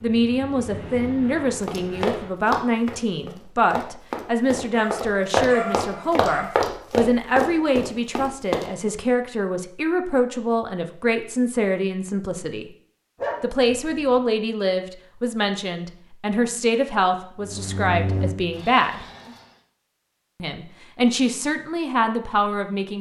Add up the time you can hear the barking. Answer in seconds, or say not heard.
3 s.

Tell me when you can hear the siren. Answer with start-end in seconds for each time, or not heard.
not heard.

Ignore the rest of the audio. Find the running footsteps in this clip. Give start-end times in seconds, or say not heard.
1.6-8.7.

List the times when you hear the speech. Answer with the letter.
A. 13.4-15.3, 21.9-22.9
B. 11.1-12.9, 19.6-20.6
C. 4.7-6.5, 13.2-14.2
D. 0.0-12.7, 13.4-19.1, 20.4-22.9
D.